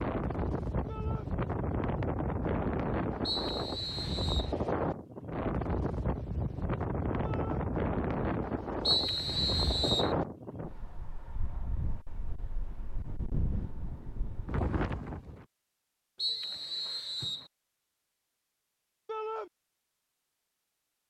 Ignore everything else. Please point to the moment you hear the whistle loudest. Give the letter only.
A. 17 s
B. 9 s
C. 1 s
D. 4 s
B.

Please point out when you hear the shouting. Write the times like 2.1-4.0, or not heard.
0.8-1.3, 7.2-7.7, 19.1-19.5.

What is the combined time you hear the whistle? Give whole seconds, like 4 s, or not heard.
4 s.